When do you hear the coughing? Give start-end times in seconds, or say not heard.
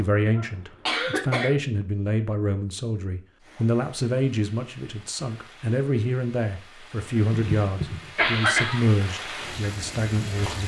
0.3-1.6, 7.5-8.9.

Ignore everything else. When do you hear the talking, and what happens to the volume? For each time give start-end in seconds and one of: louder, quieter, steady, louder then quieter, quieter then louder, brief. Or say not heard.
0.0-10.6 steady.